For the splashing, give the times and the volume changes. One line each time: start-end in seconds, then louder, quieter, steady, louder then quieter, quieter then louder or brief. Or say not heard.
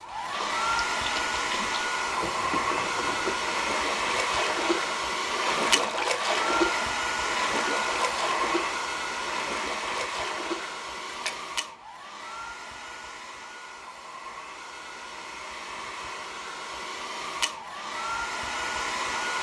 0.2-11.4 louder then quieter.